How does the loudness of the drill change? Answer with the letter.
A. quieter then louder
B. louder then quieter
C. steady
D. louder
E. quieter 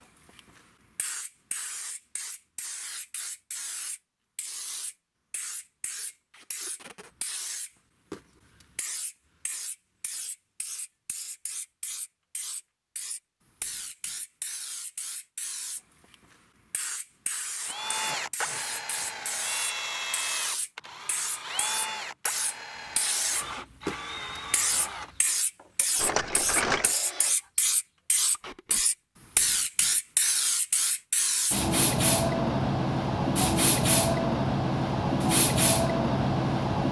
E.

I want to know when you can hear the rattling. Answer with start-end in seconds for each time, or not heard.
25.9-26.9.